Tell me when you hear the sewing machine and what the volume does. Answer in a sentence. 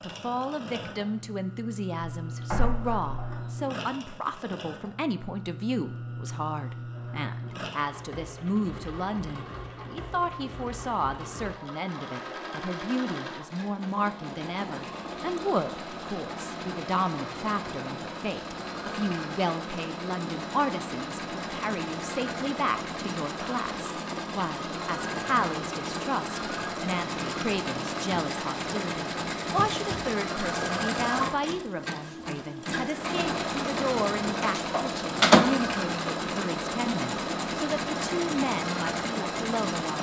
You can hear the sewing machine from 0.0 to 39.9 s, getting louder.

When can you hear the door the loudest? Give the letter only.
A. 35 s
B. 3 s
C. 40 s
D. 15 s
A.